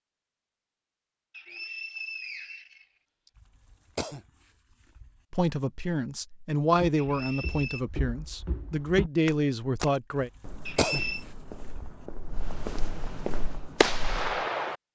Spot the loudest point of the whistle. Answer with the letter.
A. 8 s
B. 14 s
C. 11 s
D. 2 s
C.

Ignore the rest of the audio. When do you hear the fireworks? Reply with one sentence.
You can hear the fireworks from 13.3 to 14.8 s.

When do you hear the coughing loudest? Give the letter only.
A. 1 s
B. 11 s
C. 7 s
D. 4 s
B.